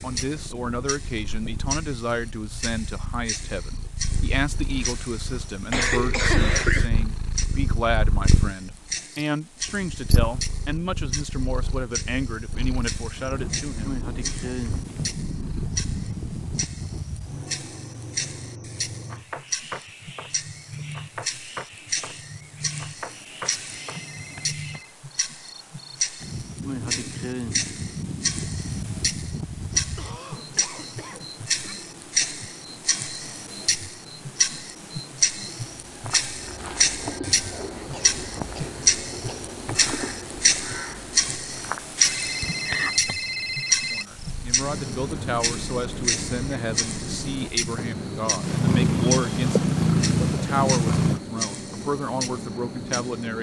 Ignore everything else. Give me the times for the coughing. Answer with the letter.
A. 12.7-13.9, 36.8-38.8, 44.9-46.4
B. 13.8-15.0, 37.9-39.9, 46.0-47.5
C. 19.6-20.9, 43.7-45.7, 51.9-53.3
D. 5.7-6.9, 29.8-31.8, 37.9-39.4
D.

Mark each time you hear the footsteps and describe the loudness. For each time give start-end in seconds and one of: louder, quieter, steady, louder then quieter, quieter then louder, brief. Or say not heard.
not heard.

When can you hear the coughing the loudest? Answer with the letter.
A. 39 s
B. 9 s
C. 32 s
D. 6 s
D.